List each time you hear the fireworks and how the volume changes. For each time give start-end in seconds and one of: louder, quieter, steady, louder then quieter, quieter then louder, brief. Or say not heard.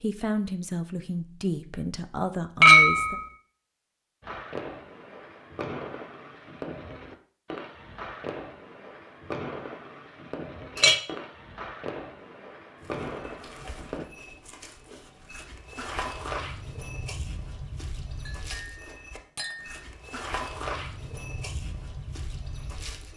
4.2-14.1 steady.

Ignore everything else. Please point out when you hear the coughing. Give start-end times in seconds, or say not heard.
not heard.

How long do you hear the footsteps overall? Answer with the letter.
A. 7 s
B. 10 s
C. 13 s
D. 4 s
B.